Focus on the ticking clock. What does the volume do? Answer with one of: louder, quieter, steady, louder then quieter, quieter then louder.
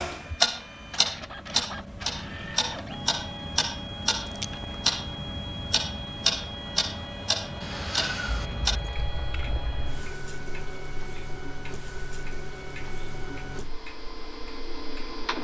quieter.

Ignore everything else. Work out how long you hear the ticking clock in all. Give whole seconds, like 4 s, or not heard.
15 s.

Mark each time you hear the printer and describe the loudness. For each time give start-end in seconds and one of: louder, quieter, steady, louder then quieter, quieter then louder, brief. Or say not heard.
0.1-15.3 steady.